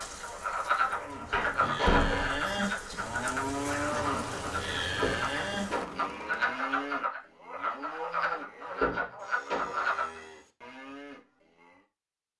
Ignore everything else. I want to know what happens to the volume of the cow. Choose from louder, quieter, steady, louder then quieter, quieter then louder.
quieter.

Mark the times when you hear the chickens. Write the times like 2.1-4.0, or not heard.
not heard.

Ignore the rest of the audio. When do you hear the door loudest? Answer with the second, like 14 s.
2 s.